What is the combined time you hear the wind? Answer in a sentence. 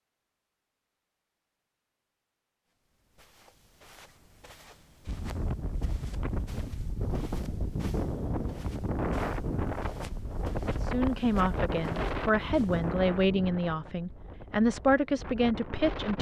You can hear the wind for 11 seconds altogether.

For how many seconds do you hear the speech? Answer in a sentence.
You can hear the speech for 5 seconds altogether.